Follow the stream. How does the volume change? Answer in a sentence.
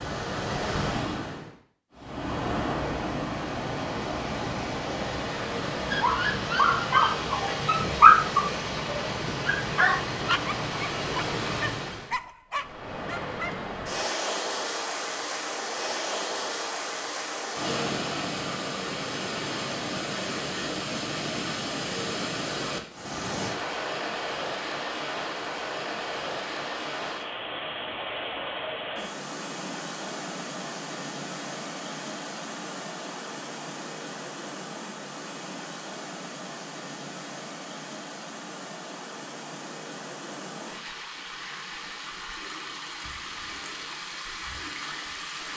The loudness of the stream goes down.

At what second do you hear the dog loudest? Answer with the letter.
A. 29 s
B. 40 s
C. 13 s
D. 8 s
D.